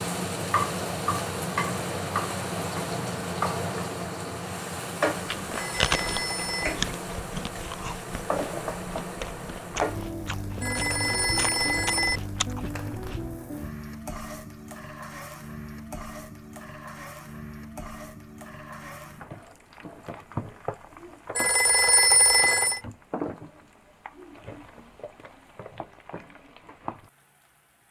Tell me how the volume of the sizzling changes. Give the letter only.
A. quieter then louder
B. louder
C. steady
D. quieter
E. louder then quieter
D.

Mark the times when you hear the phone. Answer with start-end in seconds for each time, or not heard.
5.5-6.8, 10.6-12.2, 21.4-22.8.